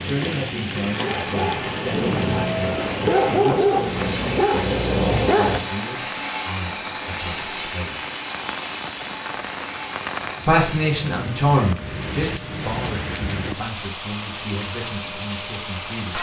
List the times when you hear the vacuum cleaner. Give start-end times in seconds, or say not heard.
0.0-16.1.